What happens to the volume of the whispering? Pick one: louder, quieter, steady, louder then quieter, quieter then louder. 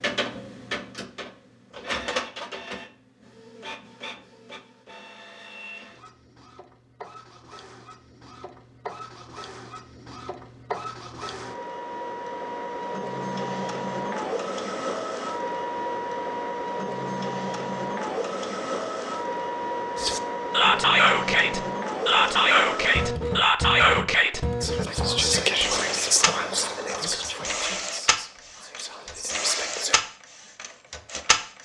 quieter.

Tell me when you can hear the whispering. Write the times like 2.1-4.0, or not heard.
19.9-30.0.